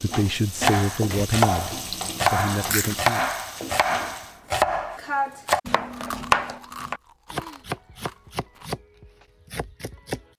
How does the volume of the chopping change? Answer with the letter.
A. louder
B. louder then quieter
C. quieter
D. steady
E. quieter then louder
C.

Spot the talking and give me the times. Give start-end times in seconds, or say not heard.
0.0-3.2.